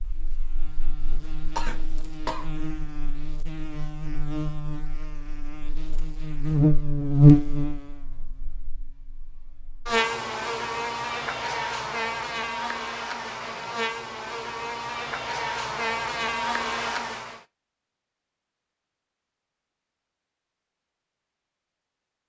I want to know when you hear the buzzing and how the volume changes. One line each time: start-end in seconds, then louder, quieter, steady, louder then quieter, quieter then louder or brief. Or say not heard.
0.0-17.4 louder then quieter.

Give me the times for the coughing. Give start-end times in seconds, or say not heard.
1.1-2.5.